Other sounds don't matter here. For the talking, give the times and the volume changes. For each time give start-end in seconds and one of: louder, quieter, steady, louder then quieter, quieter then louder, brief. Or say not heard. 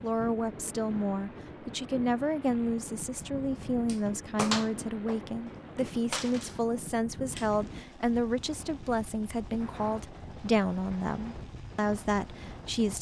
0.0-12.9 steady.